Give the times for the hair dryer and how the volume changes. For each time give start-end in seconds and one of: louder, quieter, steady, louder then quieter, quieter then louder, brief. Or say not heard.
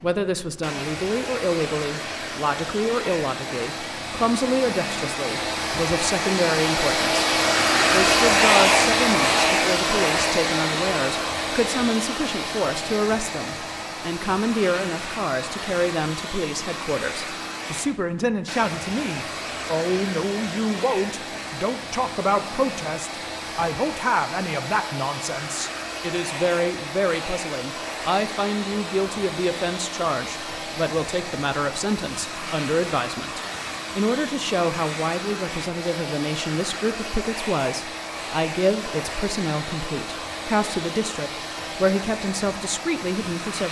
0.0-43.6 quieter.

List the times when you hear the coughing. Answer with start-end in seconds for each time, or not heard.
not heard.